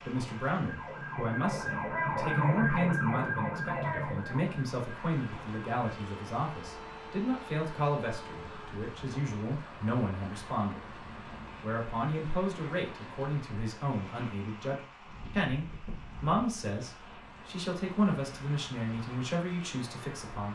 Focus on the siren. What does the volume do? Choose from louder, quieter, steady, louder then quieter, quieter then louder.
louder then quieter.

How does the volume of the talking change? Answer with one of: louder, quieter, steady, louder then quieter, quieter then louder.
steady.